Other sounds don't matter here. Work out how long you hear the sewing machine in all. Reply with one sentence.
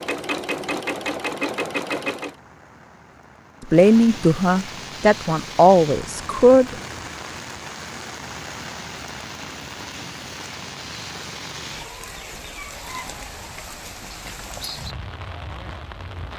The sewing machine can be heard for 2 seconds in total.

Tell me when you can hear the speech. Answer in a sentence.
You can hear the speech from 3.7 to 6.8 s.